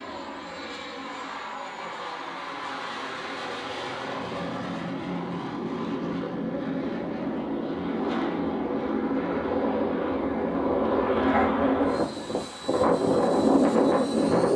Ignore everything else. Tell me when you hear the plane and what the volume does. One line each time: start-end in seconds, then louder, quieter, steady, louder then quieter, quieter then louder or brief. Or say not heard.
0.0-14.5 louder.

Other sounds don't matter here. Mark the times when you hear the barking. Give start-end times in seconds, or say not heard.
11.2-11.7.